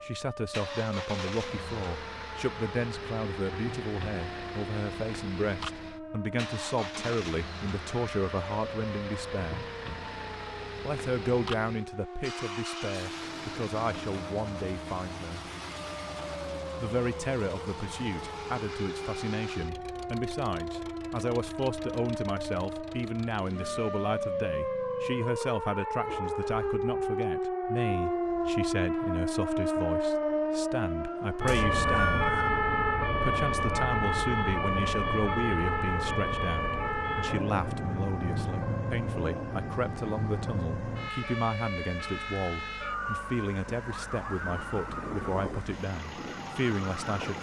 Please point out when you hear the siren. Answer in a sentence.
You can hear the siren from 0.0 to 47.3 s.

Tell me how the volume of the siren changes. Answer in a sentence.
The volume of the siren goes up, then down.